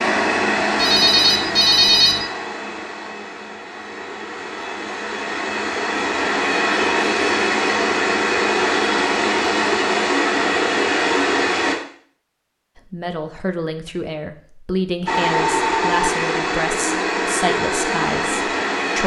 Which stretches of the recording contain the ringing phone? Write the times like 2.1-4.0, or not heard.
0.8-2.2, 15.1-16.1.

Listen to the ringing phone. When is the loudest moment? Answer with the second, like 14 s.
2 s.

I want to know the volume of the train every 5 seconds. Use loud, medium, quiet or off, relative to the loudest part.
medium, loud, loud, loud.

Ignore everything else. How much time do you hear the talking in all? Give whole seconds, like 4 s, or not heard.
6 s.